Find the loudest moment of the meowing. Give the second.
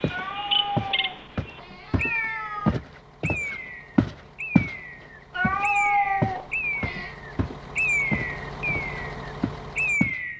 6 s.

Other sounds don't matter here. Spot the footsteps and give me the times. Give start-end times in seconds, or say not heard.
0.0-4.8, 5.4-10.2.